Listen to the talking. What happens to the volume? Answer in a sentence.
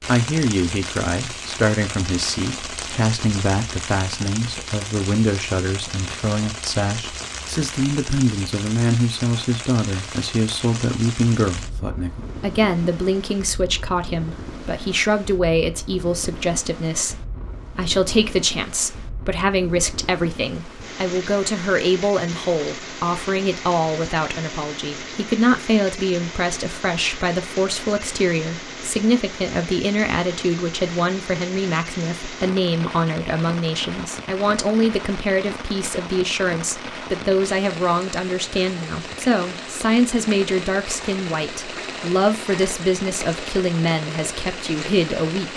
The volume of the talking stays about the same.